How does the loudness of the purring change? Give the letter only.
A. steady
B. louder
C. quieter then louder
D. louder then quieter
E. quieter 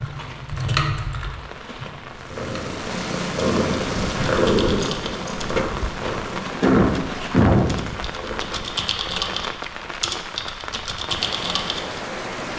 E.